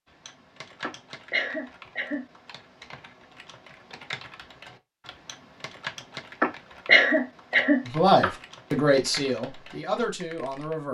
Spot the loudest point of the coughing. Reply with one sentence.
The volume of the coughing peaks at 7 seconds.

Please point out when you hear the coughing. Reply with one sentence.
The coughing can be heard from 0.8 to 2.2 s and from 6.4 to 8.3 s.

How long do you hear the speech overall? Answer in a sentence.
You can hear the speech for 3 seconds altogether.